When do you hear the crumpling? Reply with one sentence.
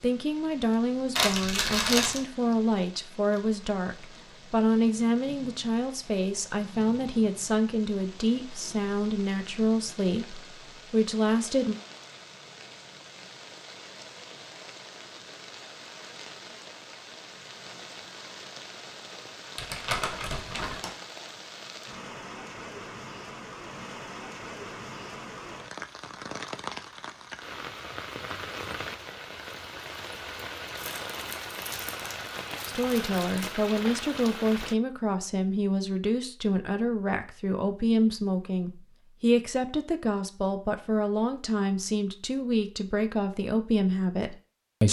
You can hear the crumpling from 1.1 to 2.2 s, from 19.6 to 20.9 s and from 30.8 to 33.5 s.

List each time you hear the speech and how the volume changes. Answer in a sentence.
The speech can be heard from 0.0 to 11.8 s, at a steady volume; and from 32.6 to 44.8 s, at a steady volume.